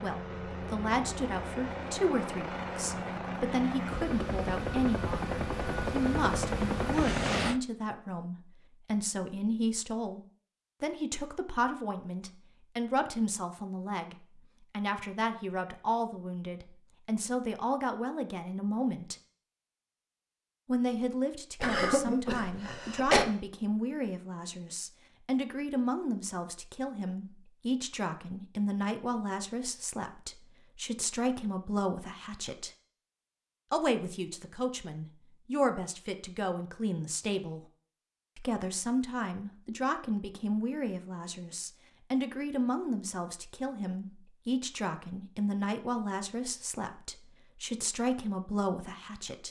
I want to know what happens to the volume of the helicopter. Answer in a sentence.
The loudness of the helicopter goes up.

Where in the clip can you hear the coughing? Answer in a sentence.
The coughing can be heard from 21.6 to 23.2 s.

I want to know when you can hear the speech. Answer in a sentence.
You can hear the speech from 0.0 to 10.2 s, from 10.8 to 19.1 s, from 20.6 to 32.7 s, from 33.7 to 37.6 s and from 38.4 to 49.4 s.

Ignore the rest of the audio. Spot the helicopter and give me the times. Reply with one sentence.
You can hear the helicopter from 0.0 to 7.6 s.